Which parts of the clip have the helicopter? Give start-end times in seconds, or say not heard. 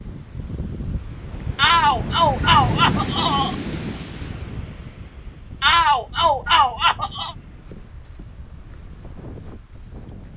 not heard.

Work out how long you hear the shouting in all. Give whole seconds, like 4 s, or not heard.
4 s.